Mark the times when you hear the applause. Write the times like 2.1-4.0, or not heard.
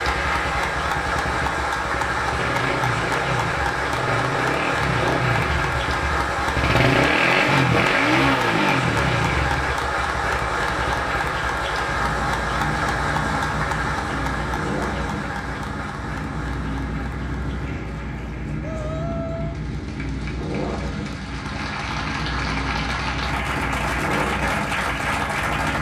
0.0-25.7.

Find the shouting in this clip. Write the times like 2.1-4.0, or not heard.
18.6-19.6.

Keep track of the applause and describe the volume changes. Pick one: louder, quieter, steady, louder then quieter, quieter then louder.
quieter then louder.